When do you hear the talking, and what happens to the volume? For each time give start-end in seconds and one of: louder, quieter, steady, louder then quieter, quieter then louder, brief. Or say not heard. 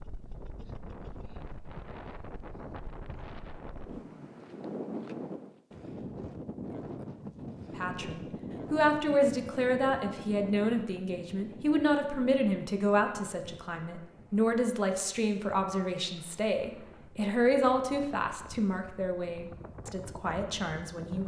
7.8-21.2 quieter.